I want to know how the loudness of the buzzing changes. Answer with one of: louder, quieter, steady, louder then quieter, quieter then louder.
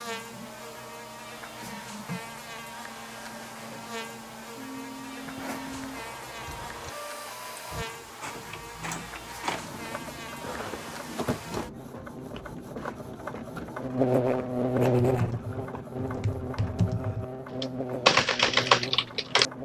louder then quieter.